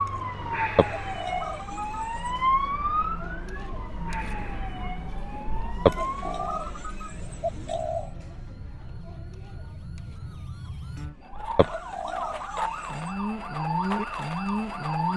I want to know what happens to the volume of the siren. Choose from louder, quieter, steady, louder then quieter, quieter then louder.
quieter then louder.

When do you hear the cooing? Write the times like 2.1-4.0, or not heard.
0.8-2.0, 5.8-8.1, 11.6-12.8.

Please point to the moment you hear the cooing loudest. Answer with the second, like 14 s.
6 s.